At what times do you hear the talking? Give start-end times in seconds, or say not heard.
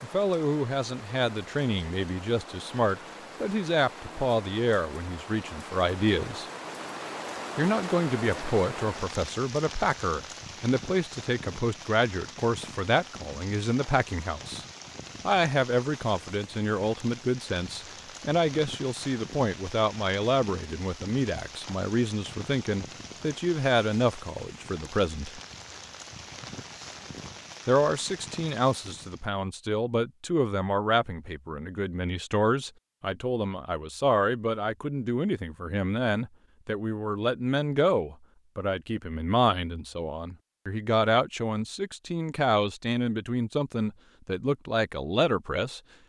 0.0-6.5, 7.5-14.7, 15.2-25.4, 27.6-45.8.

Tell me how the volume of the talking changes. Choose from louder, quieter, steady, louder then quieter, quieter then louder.
steady.